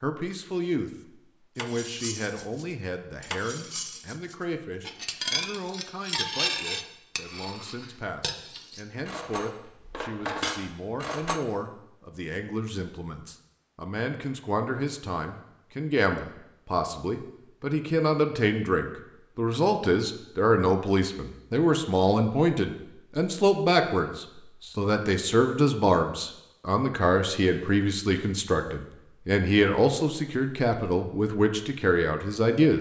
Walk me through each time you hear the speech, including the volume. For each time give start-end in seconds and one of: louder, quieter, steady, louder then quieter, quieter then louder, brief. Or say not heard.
0.0-0.9 brief
1.6-32.7 louder.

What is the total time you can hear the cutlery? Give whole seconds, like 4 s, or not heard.
10 s.